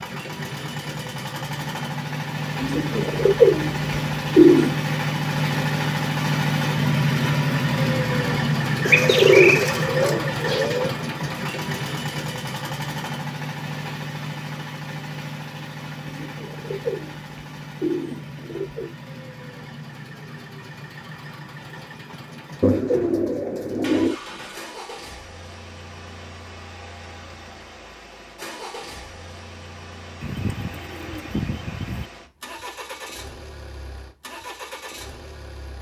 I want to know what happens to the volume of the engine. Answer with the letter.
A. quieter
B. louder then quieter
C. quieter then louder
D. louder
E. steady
A.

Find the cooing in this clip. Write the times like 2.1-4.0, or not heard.
2.6-4.8, 8.8-10.9, 16.1-18.9, 22.6-24.1, 30.2-32.0.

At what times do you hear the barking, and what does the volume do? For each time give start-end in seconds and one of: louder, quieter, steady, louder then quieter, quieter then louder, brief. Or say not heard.
not heard.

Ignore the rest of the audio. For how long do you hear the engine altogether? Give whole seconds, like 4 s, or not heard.
36 s.